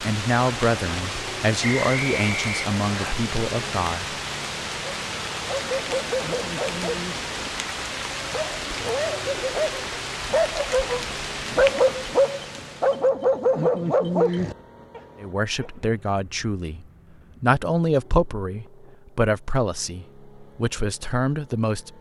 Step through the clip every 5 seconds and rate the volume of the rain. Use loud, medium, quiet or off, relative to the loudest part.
loud, loud, loud, off, off.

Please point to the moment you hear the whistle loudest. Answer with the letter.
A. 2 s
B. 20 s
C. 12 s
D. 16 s
A.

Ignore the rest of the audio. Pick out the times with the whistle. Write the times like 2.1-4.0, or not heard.
1.6-3.1.